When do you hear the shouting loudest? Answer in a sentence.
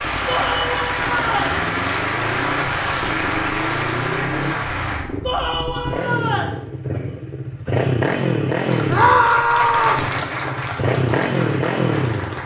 The loudest moment of the shouting is at 9 seconds.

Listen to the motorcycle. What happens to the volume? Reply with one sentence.
The volume of the motorcycle goes up.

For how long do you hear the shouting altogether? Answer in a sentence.
You can hear the shouting for 4 seconds altogether.